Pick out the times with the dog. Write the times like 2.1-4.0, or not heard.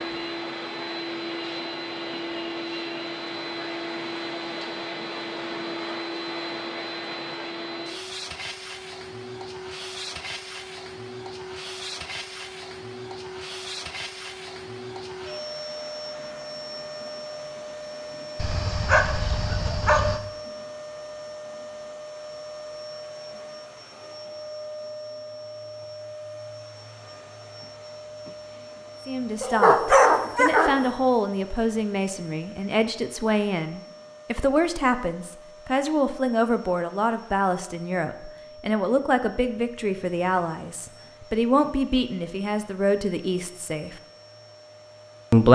18.4-20.2, 29.4-30.9.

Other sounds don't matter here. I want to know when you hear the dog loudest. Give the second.
30 s.